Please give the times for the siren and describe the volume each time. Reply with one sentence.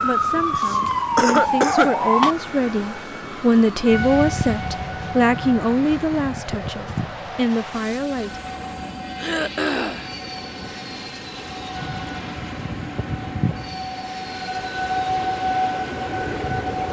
You can hear the siren from 0.0 to 16.8 s, getting quieter then louder.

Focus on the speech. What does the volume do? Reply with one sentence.
The volume of the speech goes up, then down.